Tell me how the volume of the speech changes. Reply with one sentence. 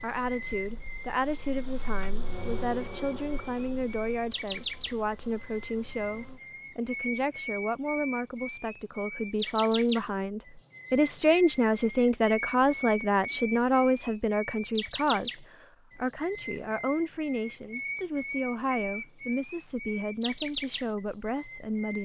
The volume of the speech goes up, then down.